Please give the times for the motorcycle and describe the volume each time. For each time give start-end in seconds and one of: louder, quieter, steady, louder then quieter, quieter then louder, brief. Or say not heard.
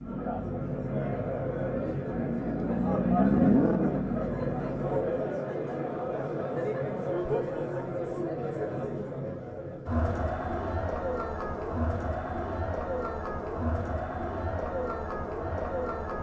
0.0-5.2 louder then quieter.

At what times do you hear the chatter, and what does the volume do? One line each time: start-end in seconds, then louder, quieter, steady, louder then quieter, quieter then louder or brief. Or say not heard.
0.0-16.1 steady.